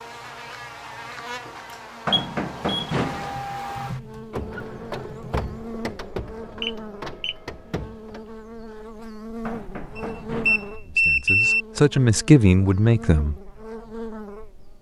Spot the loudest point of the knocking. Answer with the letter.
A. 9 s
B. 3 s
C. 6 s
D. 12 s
B.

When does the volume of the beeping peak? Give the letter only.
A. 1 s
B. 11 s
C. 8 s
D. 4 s
B.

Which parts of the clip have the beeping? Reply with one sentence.
You can hear the beeping from 2.1 to 2.9 s, from 6.6 to 7.3 s and from 9.9 to 11.7 s.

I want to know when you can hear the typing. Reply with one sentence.
You can hear the typing from 3.3 to 5.8 s.